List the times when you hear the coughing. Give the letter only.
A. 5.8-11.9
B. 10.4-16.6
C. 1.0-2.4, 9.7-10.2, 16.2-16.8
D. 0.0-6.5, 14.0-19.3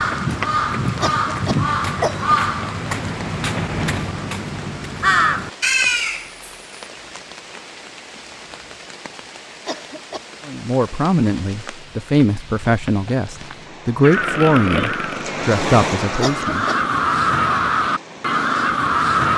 C.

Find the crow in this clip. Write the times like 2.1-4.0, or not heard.
0.0-6.5, 14.0-19.3.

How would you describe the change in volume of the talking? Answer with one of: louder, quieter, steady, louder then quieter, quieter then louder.
steady.